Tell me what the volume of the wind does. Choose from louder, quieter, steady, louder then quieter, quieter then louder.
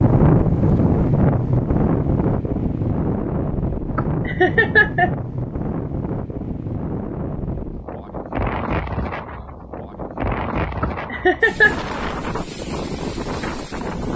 quieter.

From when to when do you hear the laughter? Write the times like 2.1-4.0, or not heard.
4.0-5.1, 10.8-11.8.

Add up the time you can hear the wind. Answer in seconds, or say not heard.
14 s.